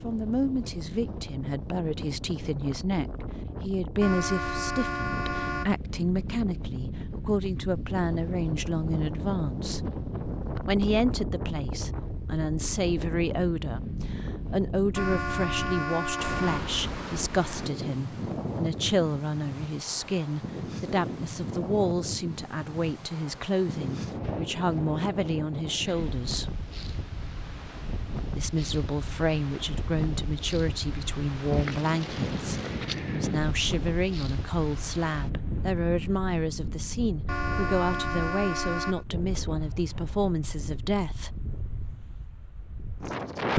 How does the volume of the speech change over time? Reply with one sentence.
The loudness of the speech stays about the same.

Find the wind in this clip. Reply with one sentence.
You can hear the wind from 0.0 to 43.5 s.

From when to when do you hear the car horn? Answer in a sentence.
The car horn can be heard from 4.0 to 5.8 s, from 14.9 to 16.7 s and from 37.2 to 39.0 s.